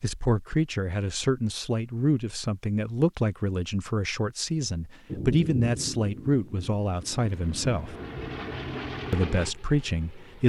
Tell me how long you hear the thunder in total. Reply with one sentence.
The thunder can be heard for 3 seconds in total.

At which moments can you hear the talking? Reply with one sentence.
The talking can be heard from 0.0 to 8.0 s and from 9.1 to 10.4 s.